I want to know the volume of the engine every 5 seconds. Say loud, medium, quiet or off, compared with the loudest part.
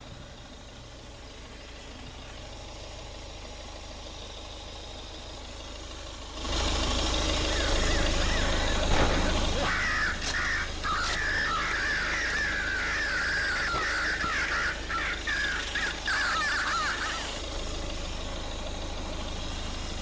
quiet, loud, medium, medium.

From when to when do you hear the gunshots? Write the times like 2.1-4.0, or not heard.
8.9-9.4.